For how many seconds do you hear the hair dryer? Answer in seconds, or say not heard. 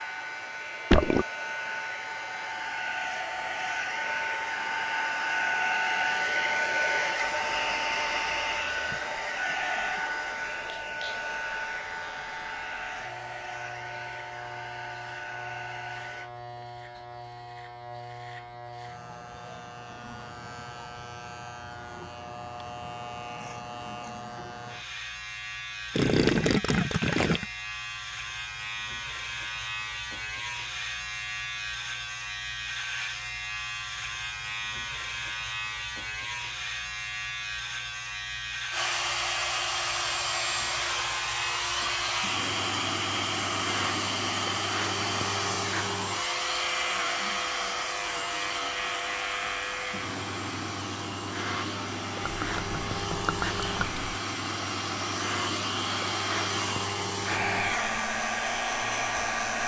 37 s.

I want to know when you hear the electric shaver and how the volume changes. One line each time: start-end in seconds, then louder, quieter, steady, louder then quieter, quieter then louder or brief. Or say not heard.
0.0-59.6 louder.